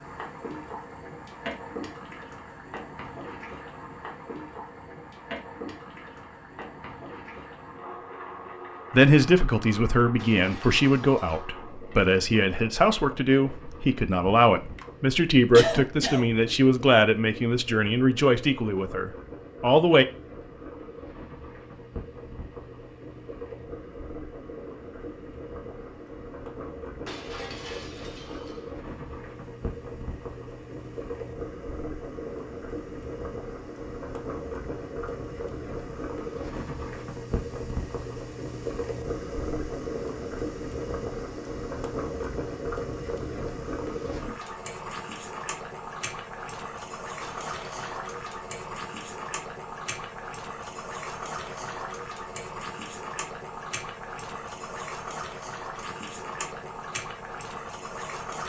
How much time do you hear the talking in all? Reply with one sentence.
You can hear the talking for 11 seconds altogether.